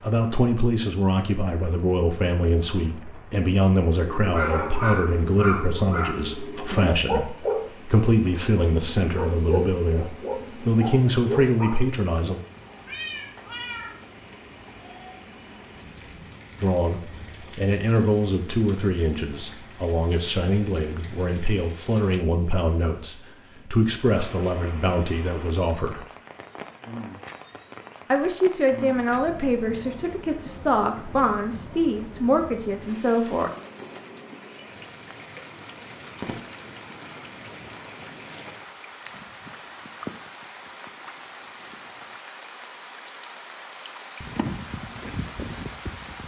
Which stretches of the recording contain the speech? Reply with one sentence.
You can hear the speech from 0.0 to 12.4 s, from 16.6 to 26.1 s and from 28.1 to 33.5 s.